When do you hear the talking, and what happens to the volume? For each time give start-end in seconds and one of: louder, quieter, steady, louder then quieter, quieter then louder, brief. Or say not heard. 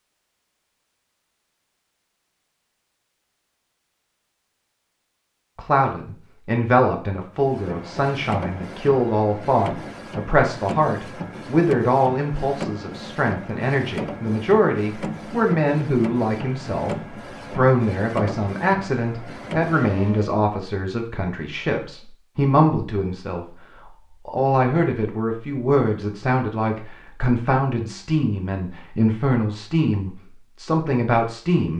5.5-31.7 steady.